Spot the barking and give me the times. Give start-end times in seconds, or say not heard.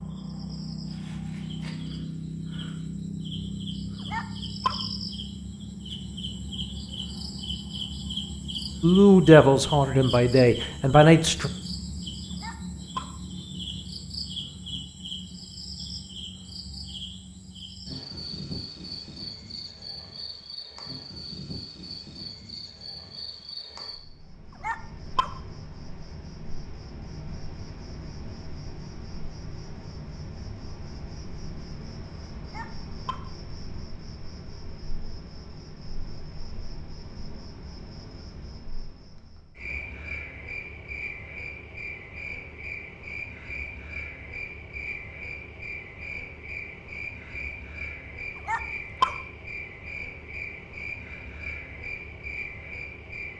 4.1-4.8, 12.4-13.1, 24.6-25.4, 32.5-33.2, 48.5-49.1.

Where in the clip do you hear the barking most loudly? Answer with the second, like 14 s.
49 s.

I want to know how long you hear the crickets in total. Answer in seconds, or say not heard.
53 s.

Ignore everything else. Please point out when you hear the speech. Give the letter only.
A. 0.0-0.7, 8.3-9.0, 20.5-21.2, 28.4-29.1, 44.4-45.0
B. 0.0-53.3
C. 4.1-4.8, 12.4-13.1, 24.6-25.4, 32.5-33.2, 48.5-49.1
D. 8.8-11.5
D.